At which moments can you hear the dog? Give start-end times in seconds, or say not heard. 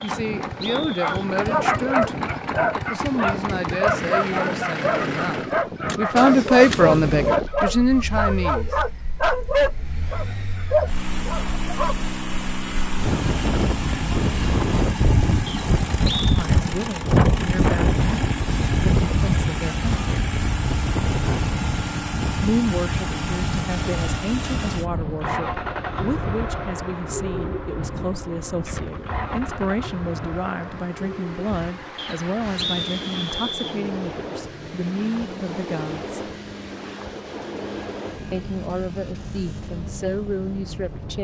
0.8-11.9.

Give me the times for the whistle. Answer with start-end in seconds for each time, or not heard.
0.0-1.2, 15.4-16.3, 31.9-33.8.